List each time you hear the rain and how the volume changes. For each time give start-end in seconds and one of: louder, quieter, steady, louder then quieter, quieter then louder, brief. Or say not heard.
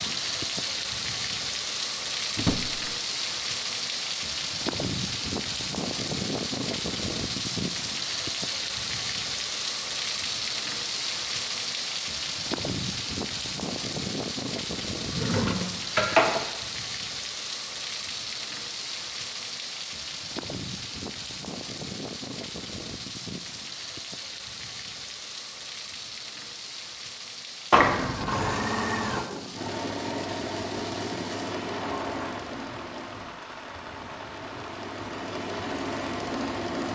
0.0-36.9 quieter.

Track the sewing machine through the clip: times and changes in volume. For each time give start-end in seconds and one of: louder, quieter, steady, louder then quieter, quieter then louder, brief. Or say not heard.
28.2-36.9 quieter then louder.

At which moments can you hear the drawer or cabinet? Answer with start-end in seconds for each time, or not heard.
2.4-2.9, 15.1-16.0, 31.6-32.4.